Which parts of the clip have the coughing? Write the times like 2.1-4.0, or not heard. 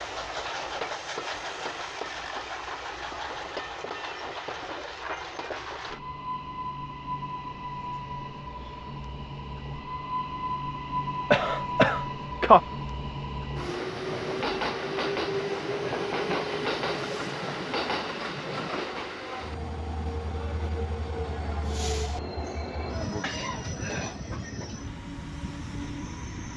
11.3-12.6.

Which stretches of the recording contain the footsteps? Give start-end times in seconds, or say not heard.
not heard.